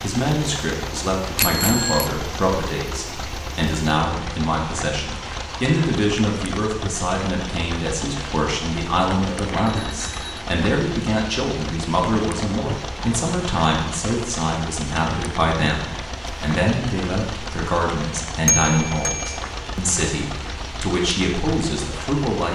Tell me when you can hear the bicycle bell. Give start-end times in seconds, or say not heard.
1.4-2.1, 9.5-10.3, 18.4-19.4.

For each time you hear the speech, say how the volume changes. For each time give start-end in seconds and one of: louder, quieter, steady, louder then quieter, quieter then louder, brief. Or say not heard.
0.0-22.4 steady.